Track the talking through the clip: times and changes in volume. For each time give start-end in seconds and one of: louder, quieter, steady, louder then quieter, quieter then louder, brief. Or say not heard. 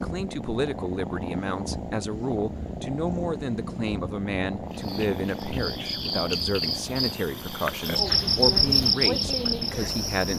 0.0-10.3 steady.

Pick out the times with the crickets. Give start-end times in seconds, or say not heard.
4.7-10.3.